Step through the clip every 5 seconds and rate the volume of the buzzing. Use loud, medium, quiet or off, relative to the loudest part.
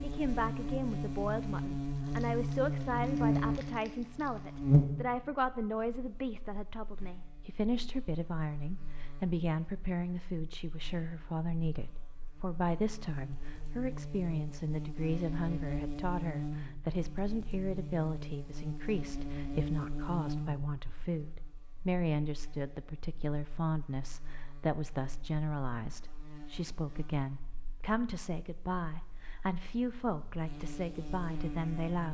loud, quiet, quiet, medium, quiet, quiet, quiet.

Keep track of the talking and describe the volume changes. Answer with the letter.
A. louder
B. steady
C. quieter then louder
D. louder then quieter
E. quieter
B.